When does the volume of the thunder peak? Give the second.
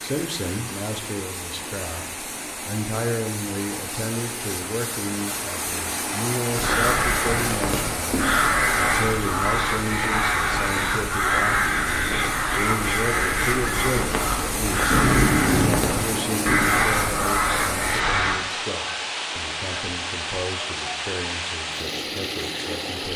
15 s.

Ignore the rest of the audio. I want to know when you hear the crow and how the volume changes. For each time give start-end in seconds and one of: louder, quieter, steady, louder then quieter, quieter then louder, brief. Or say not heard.
6.5-18.4 steady.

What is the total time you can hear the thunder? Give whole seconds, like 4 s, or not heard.
2 s.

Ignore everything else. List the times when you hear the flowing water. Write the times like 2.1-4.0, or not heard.
0.0-23.1.